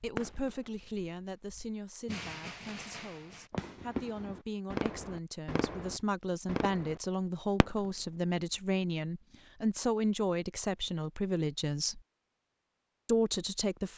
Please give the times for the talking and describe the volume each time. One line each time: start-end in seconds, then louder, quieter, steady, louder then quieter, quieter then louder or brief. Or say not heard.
0.0-12.0 louder
13.1-13.9 brief.